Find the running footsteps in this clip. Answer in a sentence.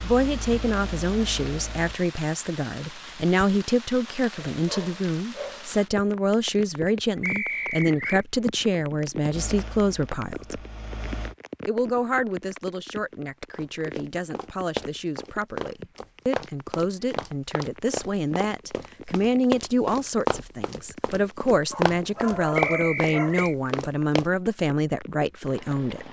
You can hear the running footsteps from 13.5 to 24.2 s.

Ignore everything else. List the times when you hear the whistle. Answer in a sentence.
You can hear the whistle from 7.2 to 8.2 s and from 22.6 to 23.6 s.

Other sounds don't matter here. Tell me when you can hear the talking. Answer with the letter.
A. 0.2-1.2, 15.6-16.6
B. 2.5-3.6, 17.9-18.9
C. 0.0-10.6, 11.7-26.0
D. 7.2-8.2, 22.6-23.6
C.